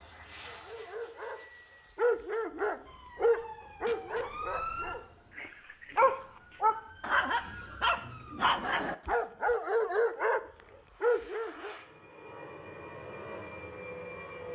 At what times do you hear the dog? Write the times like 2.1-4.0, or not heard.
0.5-11.8.